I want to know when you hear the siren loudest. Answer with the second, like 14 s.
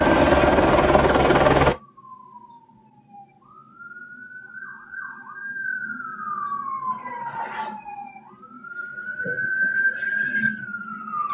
10 s.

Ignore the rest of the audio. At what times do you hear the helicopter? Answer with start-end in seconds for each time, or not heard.
0.0-1.8.